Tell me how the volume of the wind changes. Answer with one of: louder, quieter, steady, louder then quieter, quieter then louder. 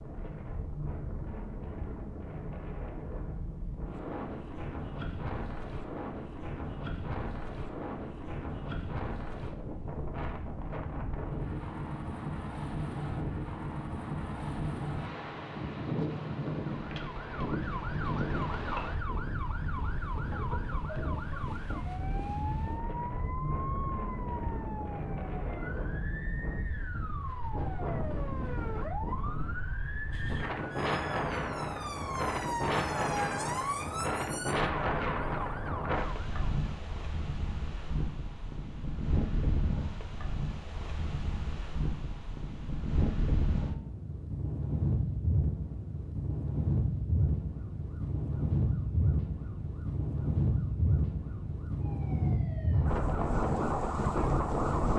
louder.